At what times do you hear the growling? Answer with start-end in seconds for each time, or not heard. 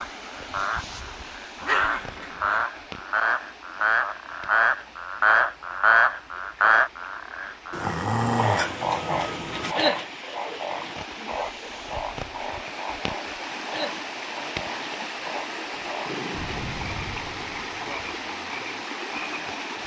1.6-2.6, 7.7-9.8, 15.7-16.6.